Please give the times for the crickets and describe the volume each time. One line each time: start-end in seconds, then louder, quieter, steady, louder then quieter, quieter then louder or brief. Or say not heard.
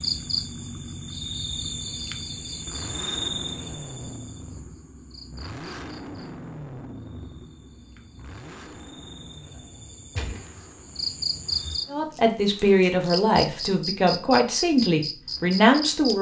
0.0-16.1 quieter then louder.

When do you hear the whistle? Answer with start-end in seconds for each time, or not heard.
not heard.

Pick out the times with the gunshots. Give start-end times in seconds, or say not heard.
10.2-10.6.